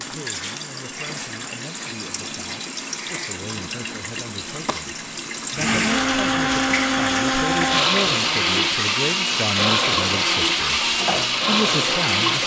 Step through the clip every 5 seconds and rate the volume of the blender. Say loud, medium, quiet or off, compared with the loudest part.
quiet, loud, loud.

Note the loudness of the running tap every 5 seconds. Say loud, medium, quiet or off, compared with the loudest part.
medium, loud, loud.